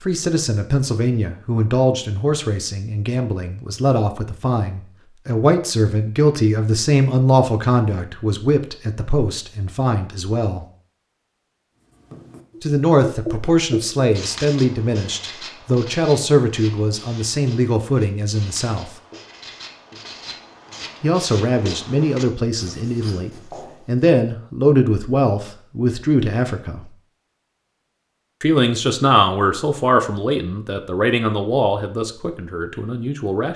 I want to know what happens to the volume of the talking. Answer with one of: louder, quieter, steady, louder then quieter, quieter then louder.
steady.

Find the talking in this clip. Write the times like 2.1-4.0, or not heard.
0.0-10.7, 12.6-18.9, 21.0-26.9, 28.4-33.5.